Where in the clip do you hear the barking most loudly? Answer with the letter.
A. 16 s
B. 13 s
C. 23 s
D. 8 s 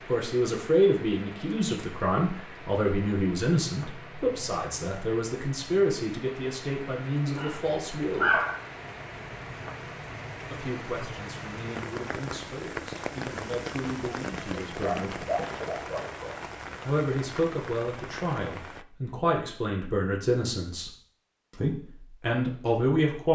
D.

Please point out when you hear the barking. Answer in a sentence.
The barking can be heard from 7.3 to 8.7 s and from 14.7 to 16.4 s.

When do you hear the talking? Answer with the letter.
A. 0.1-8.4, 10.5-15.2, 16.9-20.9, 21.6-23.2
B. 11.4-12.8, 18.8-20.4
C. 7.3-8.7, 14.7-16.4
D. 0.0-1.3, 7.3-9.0
A.